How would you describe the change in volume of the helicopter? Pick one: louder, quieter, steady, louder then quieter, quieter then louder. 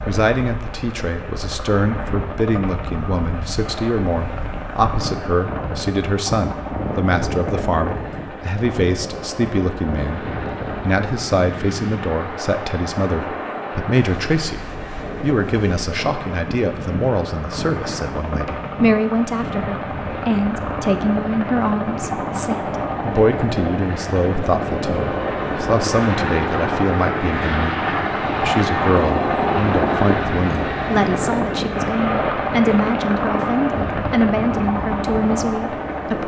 louder.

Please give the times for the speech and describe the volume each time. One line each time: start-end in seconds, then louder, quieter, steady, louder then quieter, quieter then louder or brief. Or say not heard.
0.1-36.2 steady.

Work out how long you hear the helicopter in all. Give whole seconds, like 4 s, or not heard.
36 s.